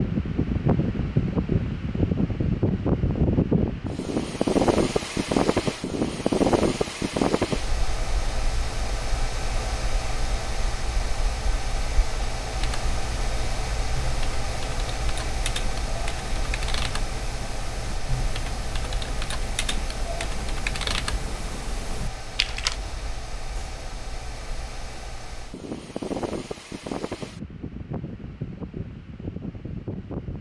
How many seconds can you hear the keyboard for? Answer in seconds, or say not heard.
10 s.